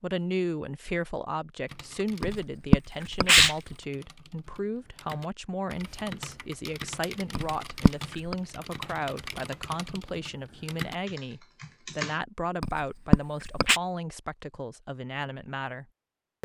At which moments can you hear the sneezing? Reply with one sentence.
You can hear the sneezing from 2.2 to 3.5 s, from 7.3 to 8.3 s and from 12.6 to 13.8 s.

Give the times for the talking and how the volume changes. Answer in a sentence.
You can hear the talking from 0.0 to 16.4 s, at a steady volume.